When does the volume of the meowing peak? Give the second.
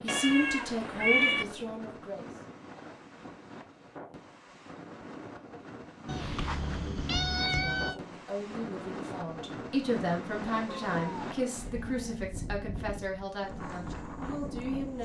1 s.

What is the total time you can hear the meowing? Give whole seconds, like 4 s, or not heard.
5 s.